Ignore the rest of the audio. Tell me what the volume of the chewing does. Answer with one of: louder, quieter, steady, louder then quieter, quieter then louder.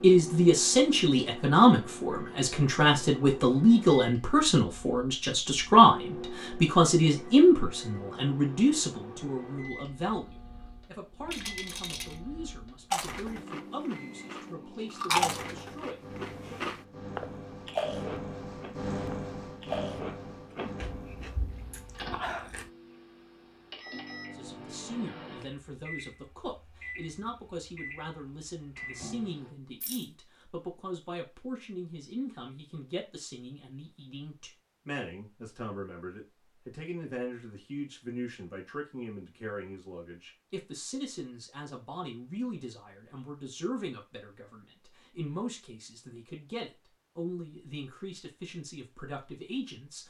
louder then quieter.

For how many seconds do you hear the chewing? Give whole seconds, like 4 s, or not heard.
10 s.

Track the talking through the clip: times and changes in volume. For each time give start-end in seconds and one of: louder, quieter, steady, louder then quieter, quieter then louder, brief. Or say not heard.
0.0-16.6 quieter
24.3-50.0 steady.